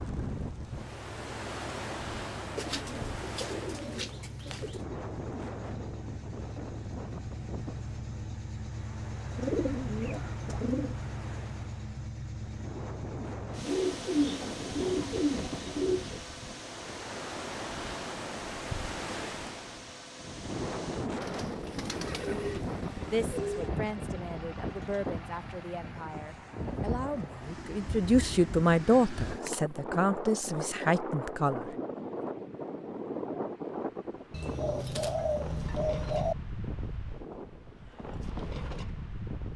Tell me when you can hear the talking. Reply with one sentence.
You can hear the talking from 23.1 to 31.7 s.